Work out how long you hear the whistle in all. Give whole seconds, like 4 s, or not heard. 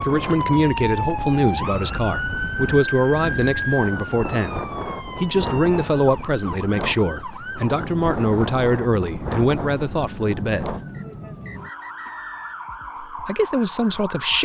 2 s.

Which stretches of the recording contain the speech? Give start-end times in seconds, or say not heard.
0.0-10.7, 13.2-14.4.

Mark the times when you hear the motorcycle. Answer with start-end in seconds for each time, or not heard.
not heard.